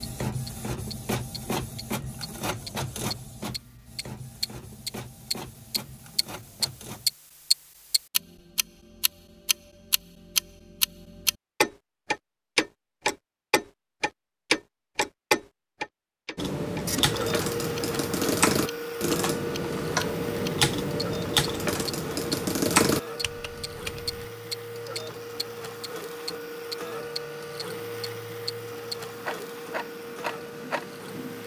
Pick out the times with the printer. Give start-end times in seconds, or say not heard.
0.0-7.2, 16.8-31.4.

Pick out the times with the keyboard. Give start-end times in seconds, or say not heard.
16.4-24.2.